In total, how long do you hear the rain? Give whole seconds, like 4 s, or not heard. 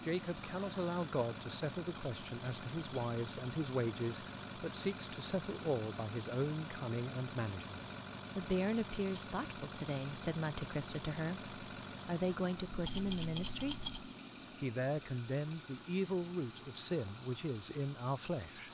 not heard.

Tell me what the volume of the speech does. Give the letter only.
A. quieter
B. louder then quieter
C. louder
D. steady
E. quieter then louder
D.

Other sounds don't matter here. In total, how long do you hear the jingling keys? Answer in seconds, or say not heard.
3 s.